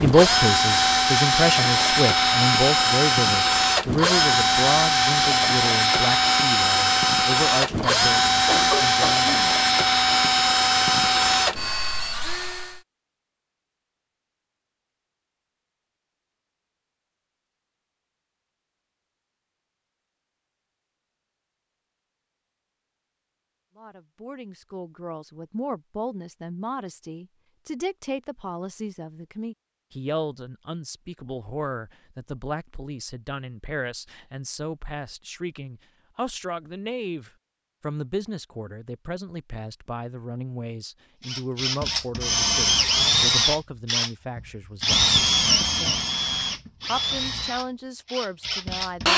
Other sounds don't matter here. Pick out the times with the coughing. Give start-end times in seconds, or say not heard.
7.8-9.6.